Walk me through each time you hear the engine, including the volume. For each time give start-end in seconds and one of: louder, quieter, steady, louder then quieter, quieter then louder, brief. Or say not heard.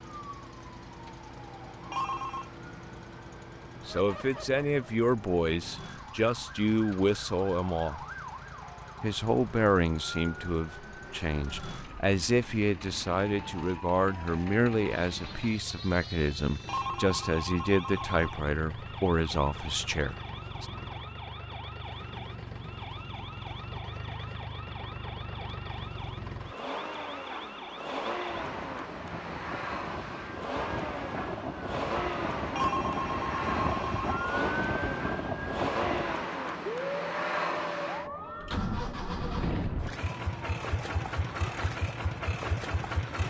0.0-43.2 louder.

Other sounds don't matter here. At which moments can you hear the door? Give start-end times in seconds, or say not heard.
not heard.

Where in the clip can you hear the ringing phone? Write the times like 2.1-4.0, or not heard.
1.9-2.5, 16.6-18.4, 32.5-34.4.